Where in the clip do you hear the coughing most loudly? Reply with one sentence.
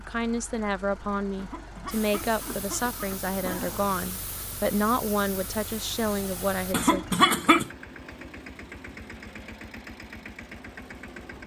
The loudest moment of the coughing is at 7 seconds.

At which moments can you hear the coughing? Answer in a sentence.
The coughing can be heard from 1.4 to 3.9 s and from 6.7 to 7.7 s.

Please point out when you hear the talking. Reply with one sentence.
You can hear the talking from 0.0 to 7.0 s.